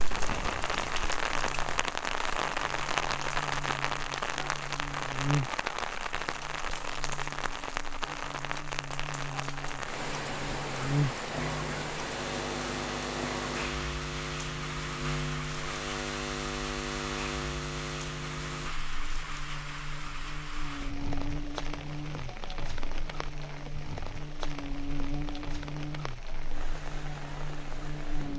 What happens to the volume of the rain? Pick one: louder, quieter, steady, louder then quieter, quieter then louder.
quieter.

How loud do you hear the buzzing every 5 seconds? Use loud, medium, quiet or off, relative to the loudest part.
medium, loud, loud, loud, medium, medium.